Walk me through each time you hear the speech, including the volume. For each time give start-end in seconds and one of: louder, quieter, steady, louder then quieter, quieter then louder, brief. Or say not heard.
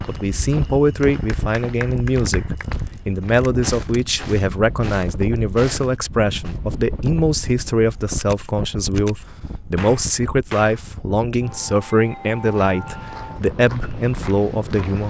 0.1-15.0 steady.